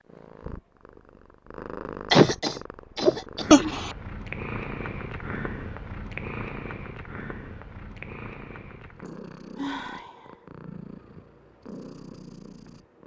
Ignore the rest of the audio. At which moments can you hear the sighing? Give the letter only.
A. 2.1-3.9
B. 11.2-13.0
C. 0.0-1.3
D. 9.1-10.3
D.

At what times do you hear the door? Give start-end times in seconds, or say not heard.
not heard.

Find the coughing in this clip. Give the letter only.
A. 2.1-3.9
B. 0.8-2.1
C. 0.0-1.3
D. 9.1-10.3
A.